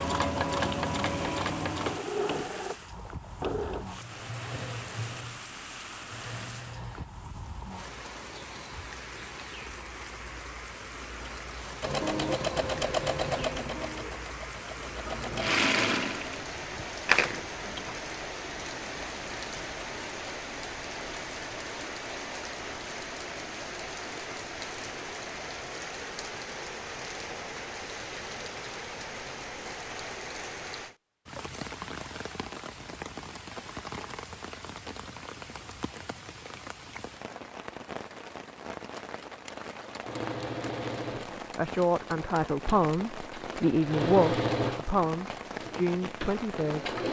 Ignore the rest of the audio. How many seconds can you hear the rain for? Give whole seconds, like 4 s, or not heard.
47 s.